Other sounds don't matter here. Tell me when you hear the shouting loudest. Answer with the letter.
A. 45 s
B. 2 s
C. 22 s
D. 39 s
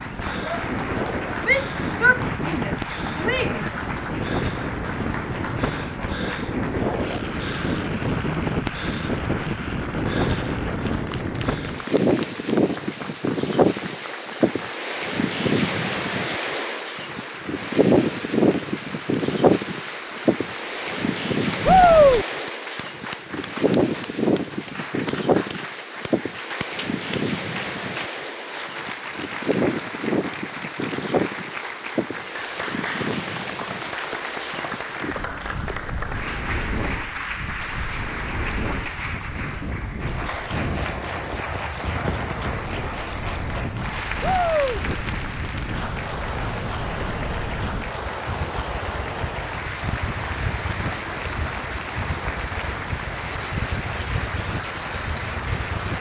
C.